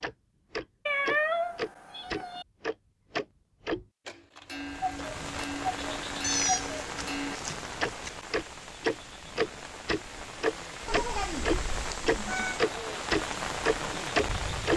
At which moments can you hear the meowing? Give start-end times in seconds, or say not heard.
0.8-2.5, 6.2-8.1, 10.8-12.7.